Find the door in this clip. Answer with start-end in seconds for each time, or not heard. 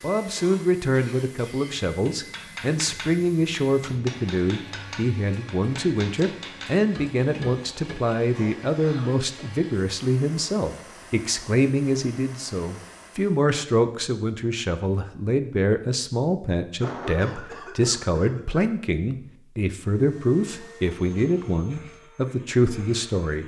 not heard.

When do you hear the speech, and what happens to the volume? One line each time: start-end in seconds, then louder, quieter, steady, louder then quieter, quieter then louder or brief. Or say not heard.
0.0-23.4 steady.